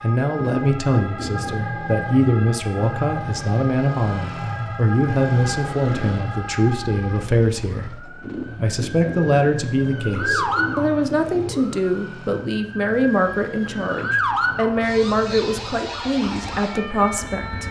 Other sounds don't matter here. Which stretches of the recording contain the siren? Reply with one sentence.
You can hear the siren from 0.0 to 17.6 s.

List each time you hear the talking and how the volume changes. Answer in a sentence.
The talking can be heard from 0.0 to 17.6 s, at a steady volume.